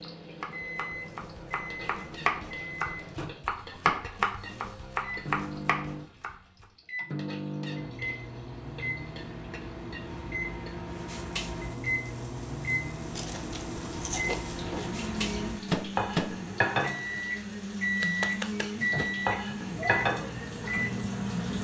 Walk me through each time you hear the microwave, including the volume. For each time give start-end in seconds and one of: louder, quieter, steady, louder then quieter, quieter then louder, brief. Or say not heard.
0.0-21.5 louder.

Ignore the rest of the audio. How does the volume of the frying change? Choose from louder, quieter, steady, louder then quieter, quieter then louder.
louder.